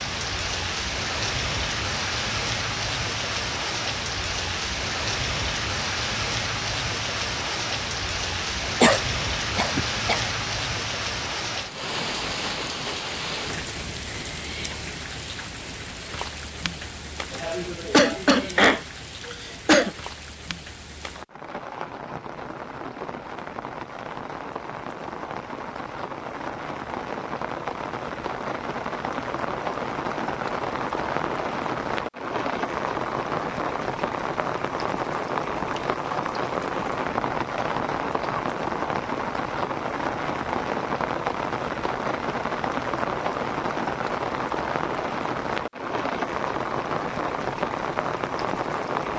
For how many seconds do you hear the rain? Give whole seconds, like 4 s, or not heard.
49 s.